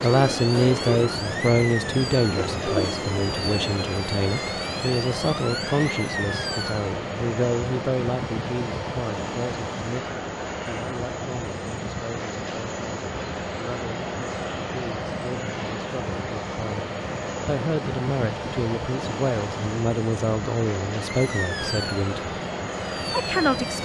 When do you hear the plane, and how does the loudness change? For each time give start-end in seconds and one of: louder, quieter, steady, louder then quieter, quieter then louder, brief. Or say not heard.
0.0-23.7 steady.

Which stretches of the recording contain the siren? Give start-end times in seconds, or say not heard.
0.0-6.8, 21.0-23.7.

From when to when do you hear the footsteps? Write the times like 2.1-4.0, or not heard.
not heard.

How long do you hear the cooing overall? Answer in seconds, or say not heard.
4 s.